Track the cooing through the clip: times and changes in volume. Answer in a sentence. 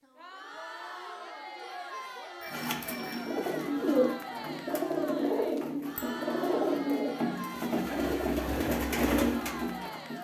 You can hear the cooing from 2.5 to 10.1 s, at a steady volume.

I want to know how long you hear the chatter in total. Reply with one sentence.
The chatter can be heard for 10 seconds in total.